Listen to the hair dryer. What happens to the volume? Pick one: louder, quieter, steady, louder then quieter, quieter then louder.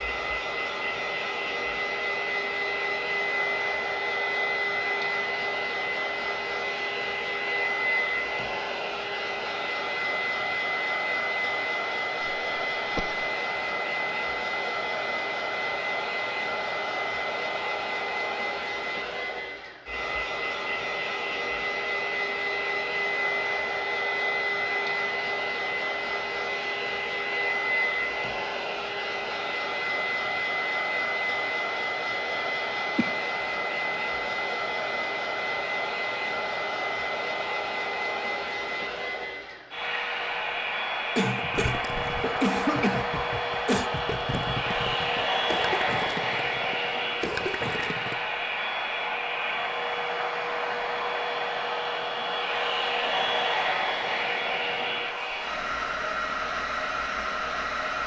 steady.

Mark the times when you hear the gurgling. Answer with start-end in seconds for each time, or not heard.
41.5-48.1.